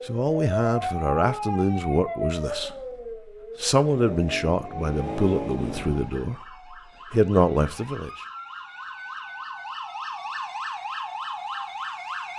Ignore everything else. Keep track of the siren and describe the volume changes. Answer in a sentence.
The loudness of the siren goes down, then up.